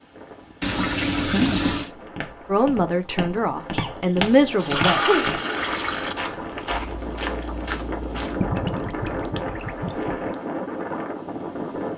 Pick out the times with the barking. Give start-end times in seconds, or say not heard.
not heard.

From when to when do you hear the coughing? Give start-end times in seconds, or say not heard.
3.7-5.3.